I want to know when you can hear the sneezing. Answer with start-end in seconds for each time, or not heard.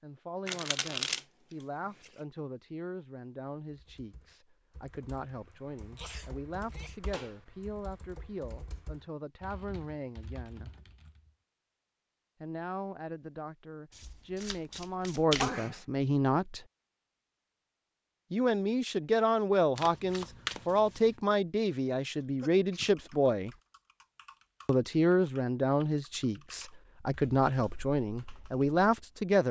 6.0-7.0, 15.3-15.8, 22.1-22.9.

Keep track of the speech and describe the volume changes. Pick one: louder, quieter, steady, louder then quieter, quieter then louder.
louder.